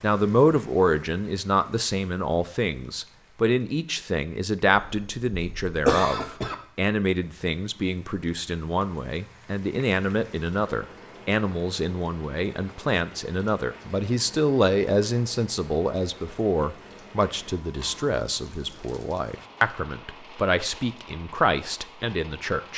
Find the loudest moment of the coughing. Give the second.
6 s.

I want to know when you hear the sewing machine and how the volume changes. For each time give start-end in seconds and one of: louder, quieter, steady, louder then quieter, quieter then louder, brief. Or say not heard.
not heard.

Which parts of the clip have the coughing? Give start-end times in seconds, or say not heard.
4.8-6.5.